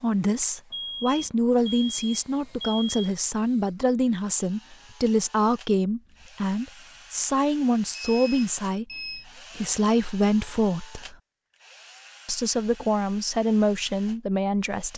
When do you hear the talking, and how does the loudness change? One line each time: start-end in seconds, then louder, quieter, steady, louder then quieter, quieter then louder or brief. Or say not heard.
0.0-11.2 steady
12.2-14.9 brief.